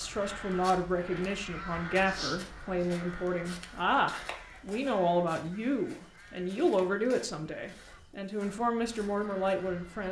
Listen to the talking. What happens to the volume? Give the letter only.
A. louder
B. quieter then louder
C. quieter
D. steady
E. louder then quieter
D.